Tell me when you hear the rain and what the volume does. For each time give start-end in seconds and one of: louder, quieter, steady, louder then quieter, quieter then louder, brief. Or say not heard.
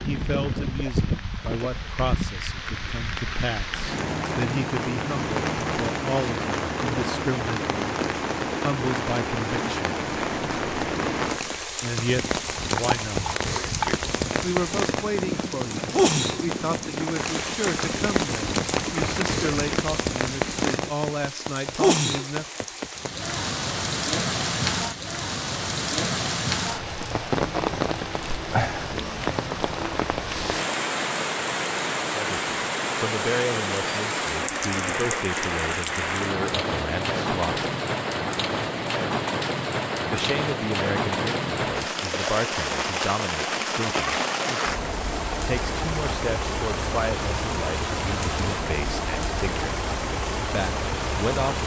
0.0-51.6 steady.